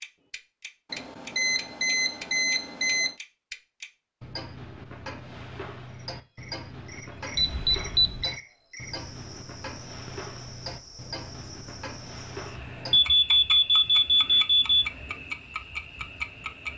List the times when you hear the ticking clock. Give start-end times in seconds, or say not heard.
0.0-16.7.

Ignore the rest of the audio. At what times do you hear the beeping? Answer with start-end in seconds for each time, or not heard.
0.9-3.1, 7.3-8.3, 12.9-14.8.